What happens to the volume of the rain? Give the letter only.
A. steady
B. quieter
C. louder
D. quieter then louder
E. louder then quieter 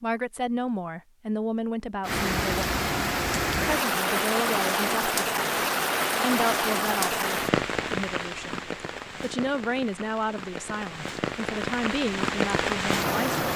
D.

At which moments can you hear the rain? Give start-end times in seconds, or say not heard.
2.0-13.5.